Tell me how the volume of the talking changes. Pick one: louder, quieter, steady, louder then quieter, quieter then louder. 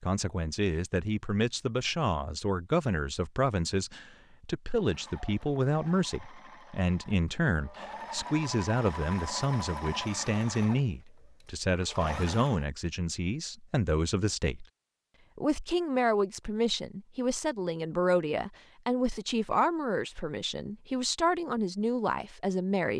steady.